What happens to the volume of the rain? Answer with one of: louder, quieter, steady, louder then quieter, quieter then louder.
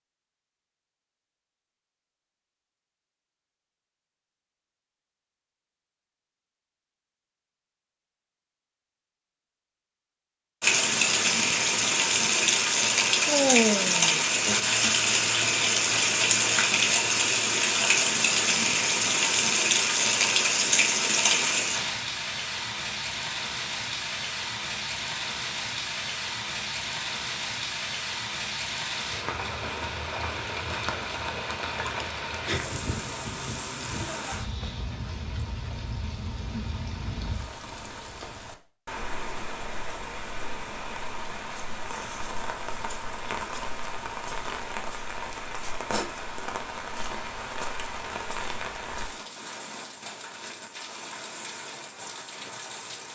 quieter.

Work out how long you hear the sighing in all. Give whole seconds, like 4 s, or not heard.
2 s.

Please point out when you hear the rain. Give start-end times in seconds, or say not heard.
10.6-53.1.